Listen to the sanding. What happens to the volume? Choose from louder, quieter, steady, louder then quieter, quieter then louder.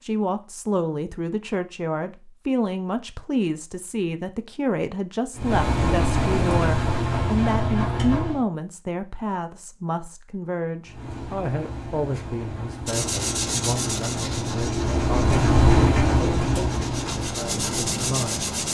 quieter then louder.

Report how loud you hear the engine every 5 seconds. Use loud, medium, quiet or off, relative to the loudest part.
off, loud, medium, loud.